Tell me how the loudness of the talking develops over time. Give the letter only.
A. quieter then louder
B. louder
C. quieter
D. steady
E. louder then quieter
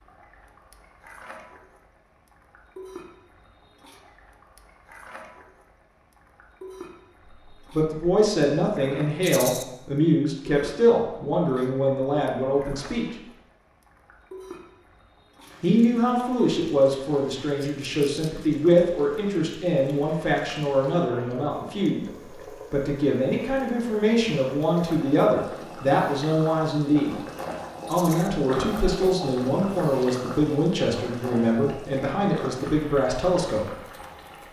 D.